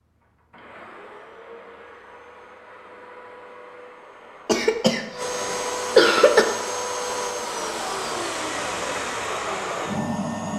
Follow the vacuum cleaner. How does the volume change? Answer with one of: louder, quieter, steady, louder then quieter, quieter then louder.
louder.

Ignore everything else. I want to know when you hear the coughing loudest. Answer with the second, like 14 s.
6 s.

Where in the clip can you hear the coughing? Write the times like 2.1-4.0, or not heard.
4.5-6.5.